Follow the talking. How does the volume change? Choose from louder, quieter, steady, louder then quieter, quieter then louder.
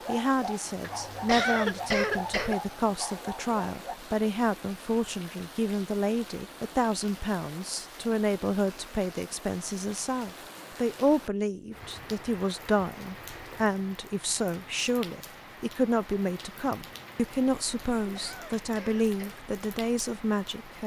steady.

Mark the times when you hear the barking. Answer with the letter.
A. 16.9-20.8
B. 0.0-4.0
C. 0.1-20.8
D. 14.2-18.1
B.